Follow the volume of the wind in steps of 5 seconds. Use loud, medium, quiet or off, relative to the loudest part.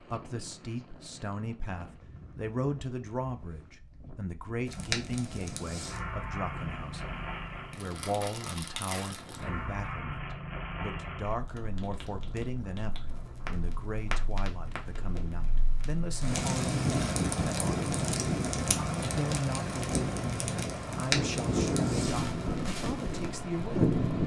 quiet, quiet, quiet, medium, loud.